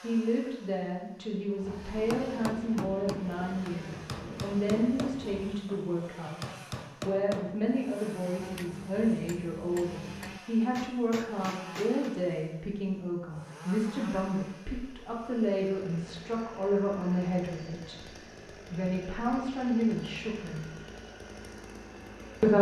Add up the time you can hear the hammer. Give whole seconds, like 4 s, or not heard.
10 s.